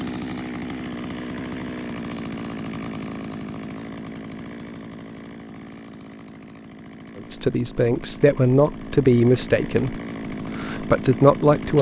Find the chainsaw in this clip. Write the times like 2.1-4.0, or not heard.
0.0-11.7.